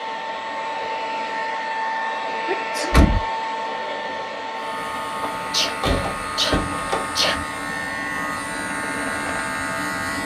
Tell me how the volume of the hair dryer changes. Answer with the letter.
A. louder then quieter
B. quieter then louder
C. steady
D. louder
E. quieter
E.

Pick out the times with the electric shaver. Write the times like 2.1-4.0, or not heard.
4.5-10.2.